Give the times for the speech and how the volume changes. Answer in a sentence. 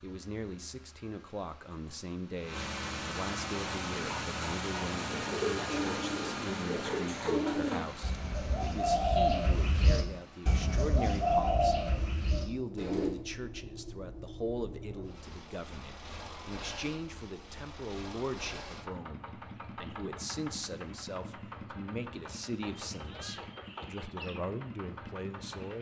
You can hear the speech from 0.0 to 25.7 s, at a steady volume.